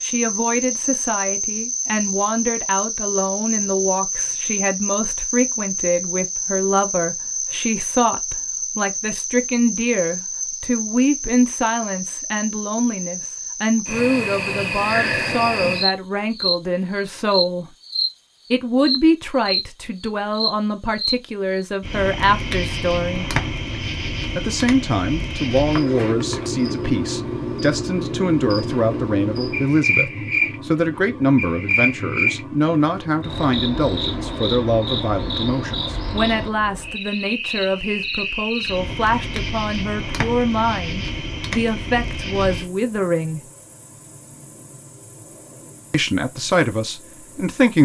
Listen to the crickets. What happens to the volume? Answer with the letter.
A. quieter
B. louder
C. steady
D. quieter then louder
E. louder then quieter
A.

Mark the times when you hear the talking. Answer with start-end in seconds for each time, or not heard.
0.0-17.6, 18.5-23.3, 24.4-43.4, 45.9-47.8.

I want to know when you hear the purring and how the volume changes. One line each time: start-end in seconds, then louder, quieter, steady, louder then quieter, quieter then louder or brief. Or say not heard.
not heard.